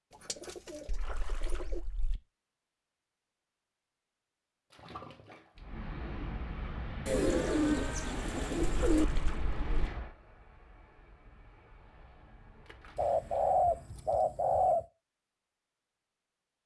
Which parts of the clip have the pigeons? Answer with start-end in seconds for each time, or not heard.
0.1-1.8, 7.0-9.1, 12.9-14.8.